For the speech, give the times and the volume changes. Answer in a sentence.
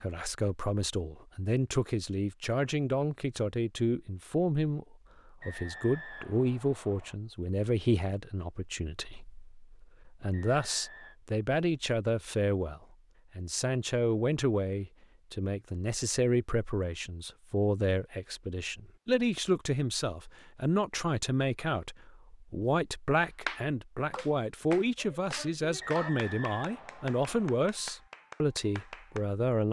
You can hear the speech from 0.0 to 29.6 s, at a steady volume.